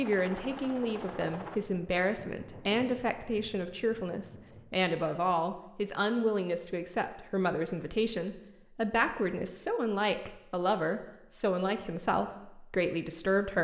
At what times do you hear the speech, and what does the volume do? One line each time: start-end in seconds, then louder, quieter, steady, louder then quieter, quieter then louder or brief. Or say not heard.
0.0-13.5 steady.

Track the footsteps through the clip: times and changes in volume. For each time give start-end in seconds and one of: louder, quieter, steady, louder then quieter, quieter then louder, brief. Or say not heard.
not heard.